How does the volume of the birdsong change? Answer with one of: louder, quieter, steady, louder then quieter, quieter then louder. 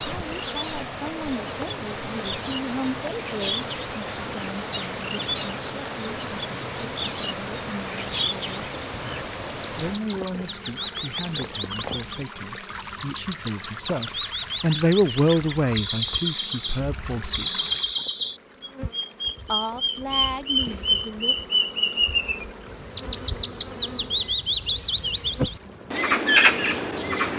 louder.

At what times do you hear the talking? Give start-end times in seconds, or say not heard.
0.1-8.7, 9.8-17.6, 19.4-21.4.